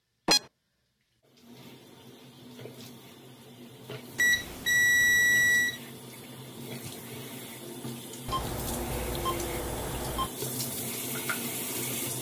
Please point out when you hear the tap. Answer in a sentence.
The tap can be heard from 0.2 to 12.1 s.